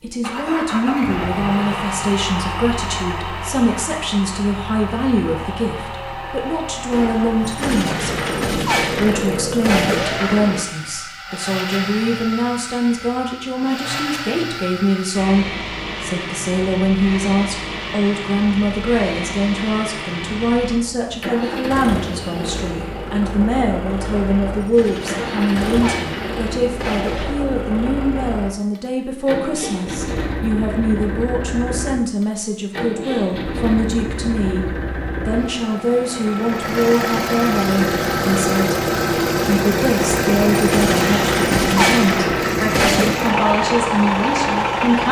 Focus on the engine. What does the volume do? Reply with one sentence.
The loudness of the engine goes up.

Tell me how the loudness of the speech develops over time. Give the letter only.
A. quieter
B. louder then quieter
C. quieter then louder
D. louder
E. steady
E.